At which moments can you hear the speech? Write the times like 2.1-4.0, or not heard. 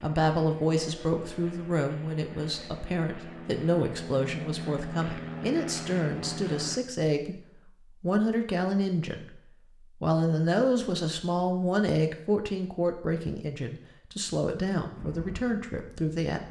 0.0-16.4.